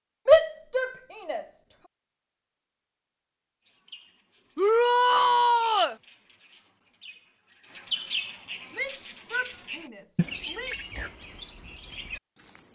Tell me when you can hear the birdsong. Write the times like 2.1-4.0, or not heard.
3.6-12.6.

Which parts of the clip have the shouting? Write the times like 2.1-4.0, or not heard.
0.2-1.4, 4.5-6.0, 8.7-10.8.